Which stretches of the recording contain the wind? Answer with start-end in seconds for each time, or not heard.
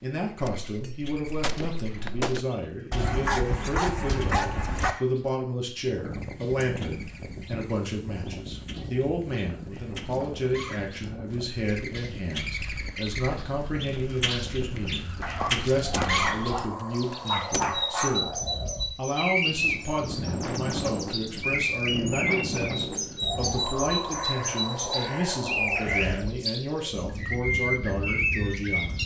5.8-29.0.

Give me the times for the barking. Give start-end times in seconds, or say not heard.
2.9-5.0, 15.2-18.2.